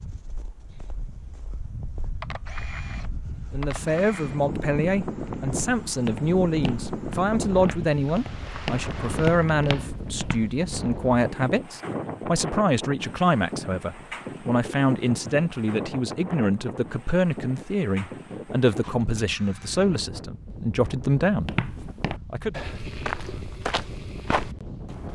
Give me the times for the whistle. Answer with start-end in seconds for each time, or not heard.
not heard.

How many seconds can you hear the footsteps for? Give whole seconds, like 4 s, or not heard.
9 s.